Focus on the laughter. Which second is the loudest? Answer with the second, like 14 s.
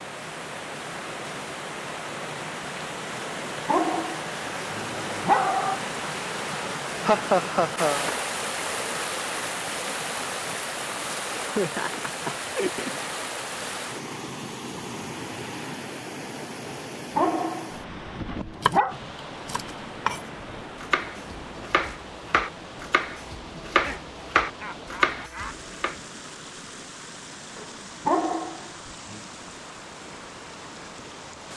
7 s.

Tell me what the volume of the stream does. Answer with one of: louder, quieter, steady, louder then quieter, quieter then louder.
quieter.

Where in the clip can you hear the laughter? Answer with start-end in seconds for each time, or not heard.
7.0-8.1, 11.4-13.0, 23.7-25.6.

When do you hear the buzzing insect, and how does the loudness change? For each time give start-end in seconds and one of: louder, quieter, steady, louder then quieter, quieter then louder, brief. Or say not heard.
not heard.